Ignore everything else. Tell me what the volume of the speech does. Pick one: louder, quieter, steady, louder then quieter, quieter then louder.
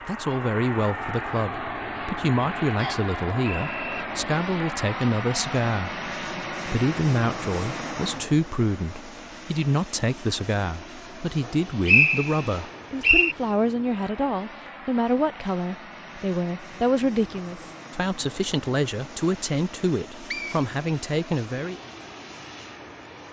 steady.